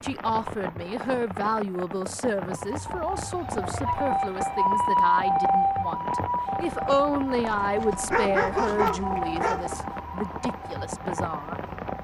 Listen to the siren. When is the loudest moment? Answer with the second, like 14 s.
5 s.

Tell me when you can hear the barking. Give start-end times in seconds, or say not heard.
7.5-9.8.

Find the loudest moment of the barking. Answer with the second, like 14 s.
8 s.